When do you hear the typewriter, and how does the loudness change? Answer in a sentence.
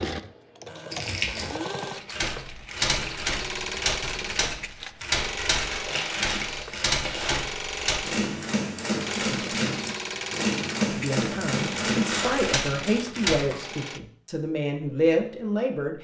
You can hear the typewriter from 2.1 to 13.4 s, at a steady volume.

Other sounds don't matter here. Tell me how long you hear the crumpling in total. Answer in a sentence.
You can hear the crumpling for 5 seconds altogether.